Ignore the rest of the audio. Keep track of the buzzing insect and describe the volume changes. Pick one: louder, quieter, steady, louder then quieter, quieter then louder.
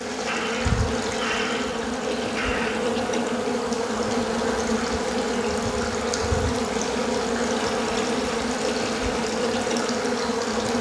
steady.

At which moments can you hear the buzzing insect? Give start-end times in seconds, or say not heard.
0.0-10.7.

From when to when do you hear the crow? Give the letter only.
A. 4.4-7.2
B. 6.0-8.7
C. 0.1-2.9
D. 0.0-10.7
C.